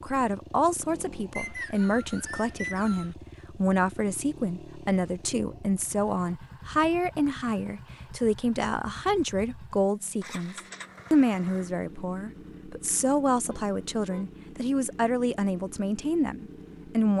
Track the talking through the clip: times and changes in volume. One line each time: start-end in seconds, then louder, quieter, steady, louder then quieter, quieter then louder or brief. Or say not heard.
0.0-17.1 steady.